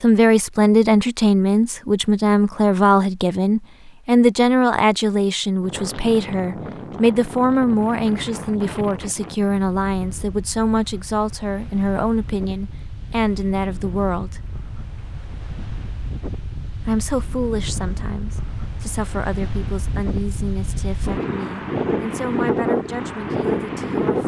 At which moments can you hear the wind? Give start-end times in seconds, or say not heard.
5.6-24.2.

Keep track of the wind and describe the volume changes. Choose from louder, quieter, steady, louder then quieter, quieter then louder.
quieter then louder.